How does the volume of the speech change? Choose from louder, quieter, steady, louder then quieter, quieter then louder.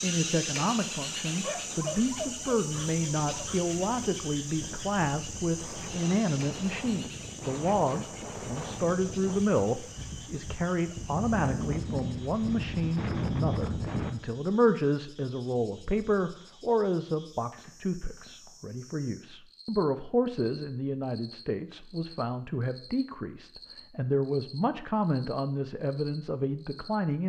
steady.